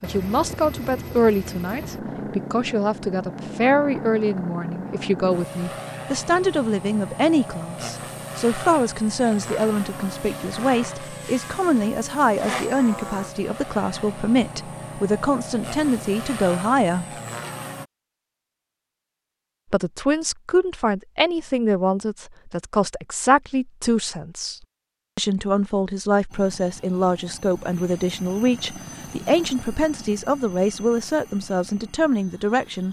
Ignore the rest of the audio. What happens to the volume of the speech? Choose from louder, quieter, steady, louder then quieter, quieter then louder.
steady.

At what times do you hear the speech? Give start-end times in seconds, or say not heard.
0.0-17.1, 19.7-32.8.